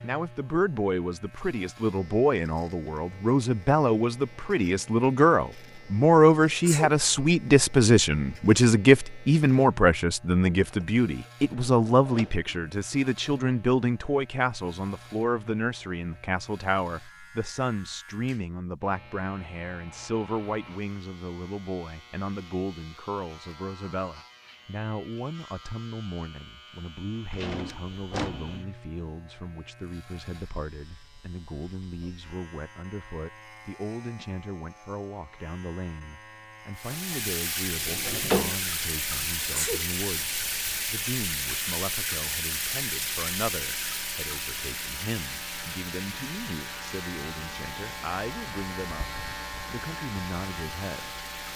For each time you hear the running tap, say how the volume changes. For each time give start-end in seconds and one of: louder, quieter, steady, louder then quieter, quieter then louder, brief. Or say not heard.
36.8-51.5 quieter.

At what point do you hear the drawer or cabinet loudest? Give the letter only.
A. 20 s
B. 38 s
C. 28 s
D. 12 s
B.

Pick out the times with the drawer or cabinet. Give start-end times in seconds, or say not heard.
10.6-12.6, 27.3-28.6, 36.9-38.6.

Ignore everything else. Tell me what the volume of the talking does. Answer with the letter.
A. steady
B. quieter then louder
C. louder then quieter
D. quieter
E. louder
D.